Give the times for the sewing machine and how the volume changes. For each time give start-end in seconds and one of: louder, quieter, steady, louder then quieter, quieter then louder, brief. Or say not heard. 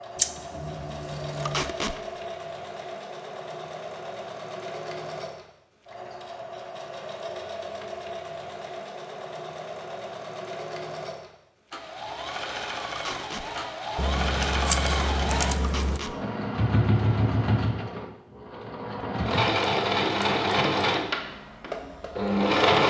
0.0-22.8 louder.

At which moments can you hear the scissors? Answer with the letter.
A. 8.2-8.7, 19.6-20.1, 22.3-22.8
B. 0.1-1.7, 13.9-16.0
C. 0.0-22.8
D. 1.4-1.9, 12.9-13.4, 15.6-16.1
B.